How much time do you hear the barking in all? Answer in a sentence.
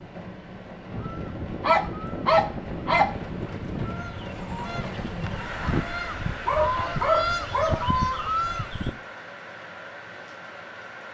The barking can be heard for 3 seconds in total.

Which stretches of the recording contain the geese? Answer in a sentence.
You can hear the geese from 0.8 to 8.9 s.